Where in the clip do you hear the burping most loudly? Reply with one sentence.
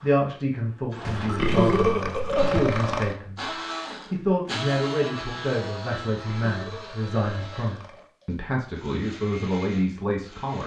The volume of the burping peaks at 2 seconds.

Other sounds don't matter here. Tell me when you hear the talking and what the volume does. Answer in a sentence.
The talking can be heard from 0.0 to 10.6 s, at a steady volume.